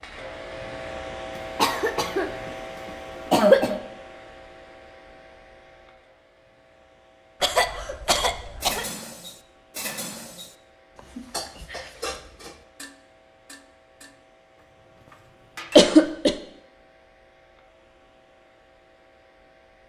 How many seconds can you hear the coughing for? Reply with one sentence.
The coughing can be heard for 3 seconds in total.